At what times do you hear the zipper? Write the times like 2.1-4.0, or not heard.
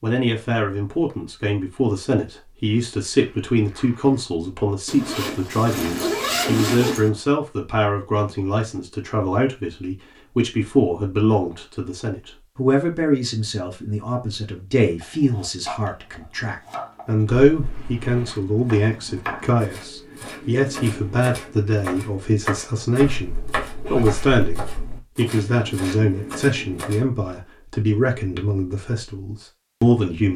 4.8-7.0, 17.4-18.1, 23.0-25.0.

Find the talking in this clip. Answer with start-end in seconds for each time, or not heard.
0.0-23.3, 23.9-30.3.